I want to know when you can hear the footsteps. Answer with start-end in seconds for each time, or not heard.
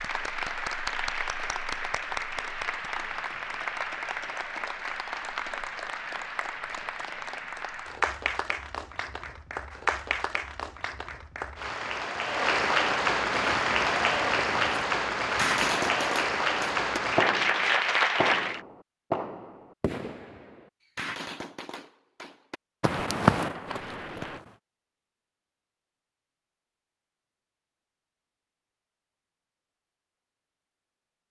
22.8-24.6.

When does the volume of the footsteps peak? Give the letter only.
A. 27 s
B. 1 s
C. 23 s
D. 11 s
C.